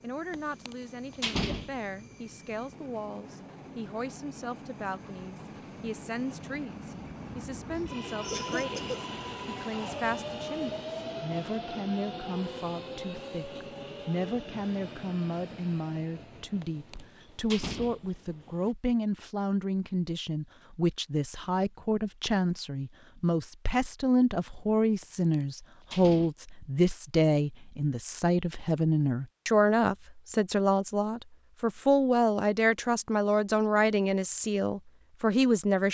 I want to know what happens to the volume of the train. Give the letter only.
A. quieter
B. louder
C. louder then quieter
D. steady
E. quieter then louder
C.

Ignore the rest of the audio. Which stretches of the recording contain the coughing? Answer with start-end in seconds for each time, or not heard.
7.8-9.0.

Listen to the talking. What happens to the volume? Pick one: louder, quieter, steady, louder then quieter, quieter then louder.
louder.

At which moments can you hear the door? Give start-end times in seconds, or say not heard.
0.3-1.8, 16.6-18.5, 25.0-26.4.